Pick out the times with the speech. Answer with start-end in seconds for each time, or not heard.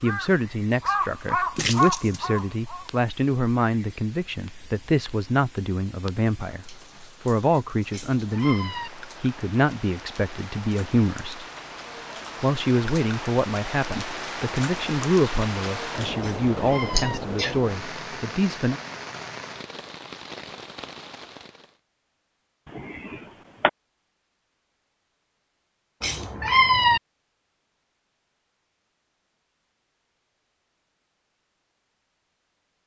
0.0-11.4, 12.4-18.8.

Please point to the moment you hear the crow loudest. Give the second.
2 s.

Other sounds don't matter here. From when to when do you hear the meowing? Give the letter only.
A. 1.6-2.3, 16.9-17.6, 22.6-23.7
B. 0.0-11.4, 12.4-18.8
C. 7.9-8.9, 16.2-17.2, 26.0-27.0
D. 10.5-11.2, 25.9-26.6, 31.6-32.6
C.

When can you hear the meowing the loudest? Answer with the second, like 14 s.
27 s.